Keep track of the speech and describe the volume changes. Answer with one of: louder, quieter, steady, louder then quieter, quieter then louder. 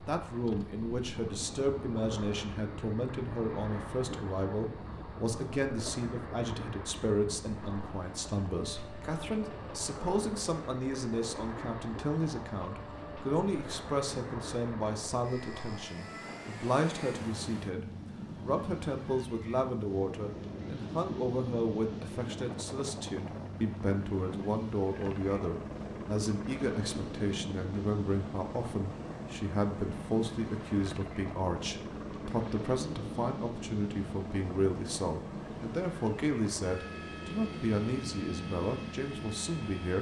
steady.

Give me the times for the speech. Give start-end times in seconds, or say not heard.
0.1-39.9.